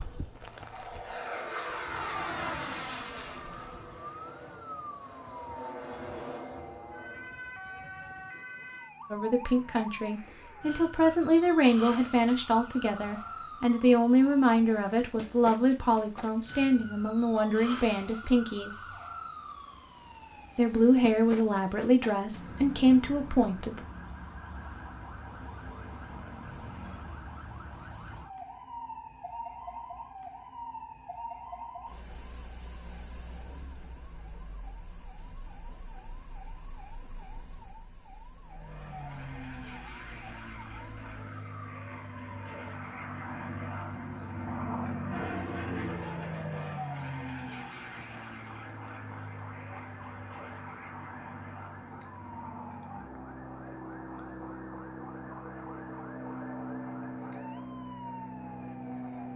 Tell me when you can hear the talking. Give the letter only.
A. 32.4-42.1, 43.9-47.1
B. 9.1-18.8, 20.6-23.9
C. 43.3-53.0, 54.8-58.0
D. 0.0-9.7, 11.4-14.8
B.